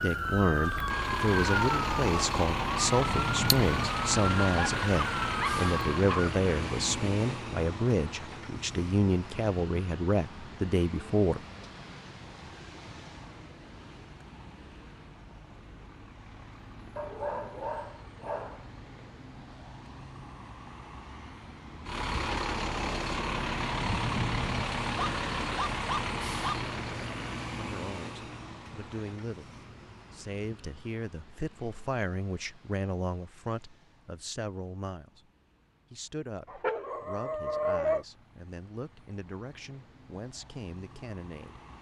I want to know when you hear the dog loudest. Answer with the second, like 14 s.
38 s.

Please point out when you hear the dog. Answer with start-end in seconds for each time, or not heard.
4.8-6.3, 16.9-18.6, 24.9-26.6, 36.5-38.0.